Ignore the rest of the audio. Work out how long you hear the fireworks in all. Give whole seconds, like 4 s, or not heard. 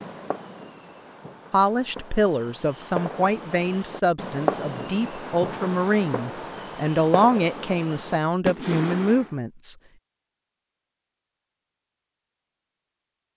9 s.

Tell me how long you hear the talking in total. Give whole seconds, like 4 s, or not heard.
8 s.